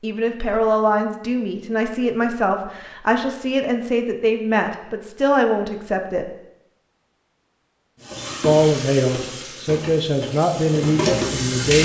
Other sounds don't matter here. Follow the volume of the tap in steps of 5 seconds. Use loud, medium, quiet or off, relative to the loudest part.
off, medium, loud.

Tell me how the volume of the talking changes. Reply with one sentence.
The loudness of the talking stays about the same.